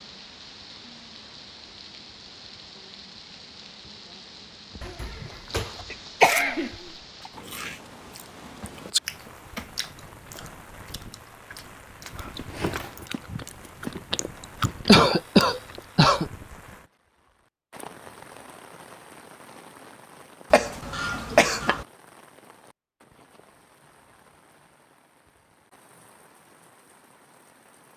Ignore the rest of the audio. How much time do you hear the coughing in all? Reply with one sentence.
The coughing can be heard for 5 seconds in total.